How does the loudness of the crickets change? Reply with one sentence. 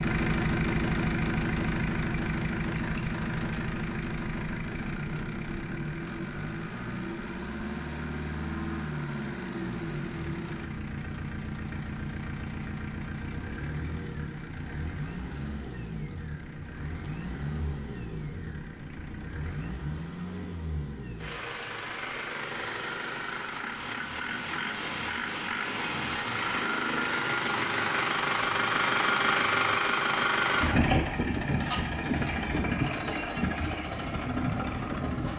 The loudness of the crickets goes down.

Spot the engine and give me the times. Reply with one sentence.
You can hear the engine from 0.0 to 35.3 s.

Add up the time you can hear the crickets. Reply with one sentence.
The crickets can be heard for 35 seconds in total.